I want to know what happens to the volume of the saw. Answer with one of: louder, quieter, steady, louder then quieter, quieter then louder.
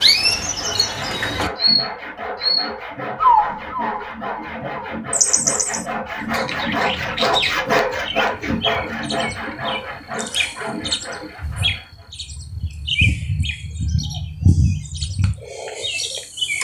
louder then quieter.